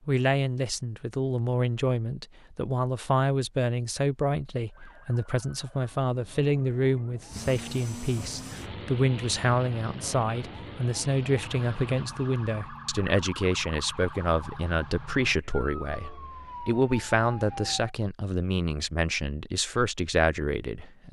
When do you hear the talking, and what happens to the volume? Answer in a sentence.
You can hear the talking from 0.1 to 21.0 s, at a steady volume.